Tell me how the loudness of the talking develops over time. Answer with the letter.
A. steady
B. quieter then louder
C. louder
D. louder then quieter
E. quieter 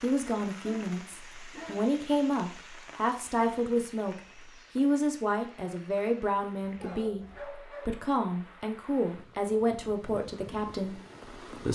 A.